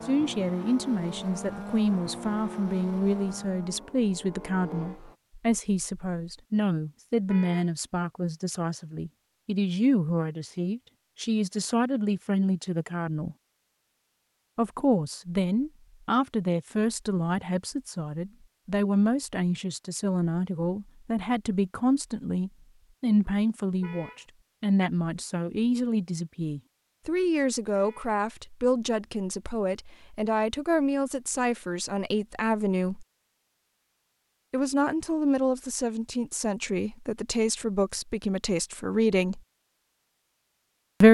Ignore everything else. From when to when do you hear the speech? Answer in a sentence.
You can hear the speech from 0.1 to 13.3 s, from 14.6 to 33.0 s and from 34.5 to 39.4 s.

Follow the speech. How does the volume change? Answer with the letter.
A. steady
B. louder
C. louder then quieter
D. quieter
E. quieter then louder
A.